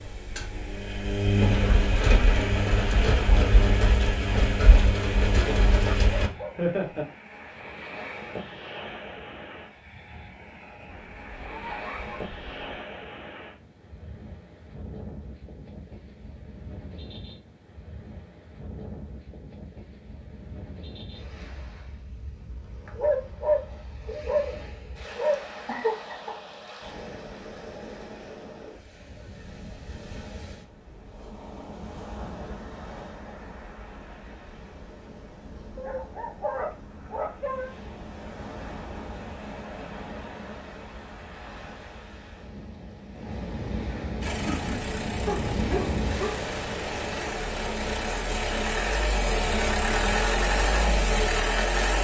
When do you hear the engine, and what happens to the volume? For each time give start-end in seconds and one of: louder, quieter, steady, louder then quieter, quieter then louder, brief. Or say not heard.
0.0-6.3 steady
44.2-51.9 louder.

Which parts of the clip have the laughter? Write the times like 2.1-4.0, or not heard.
6.5-7.0, 25.6-26.4, 43.9-44.9.